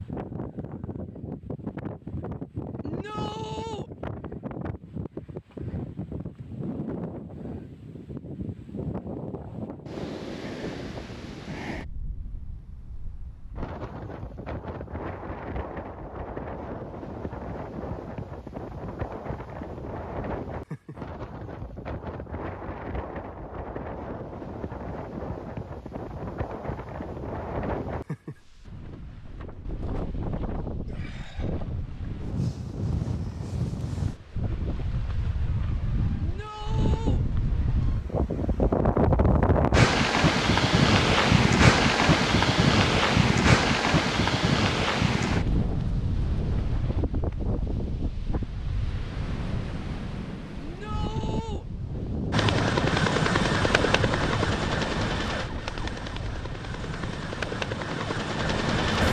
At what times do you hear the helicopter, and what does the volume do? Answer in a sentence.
The helicopter can be heard from 52.3 to 59.0 s, getting quieter then louder.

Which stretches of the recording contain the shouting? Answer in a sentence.
The shouting can be heard from 2.8 to 3.9 s, from 36.1 to 37.2 s and from 50.6 to 51.6 s.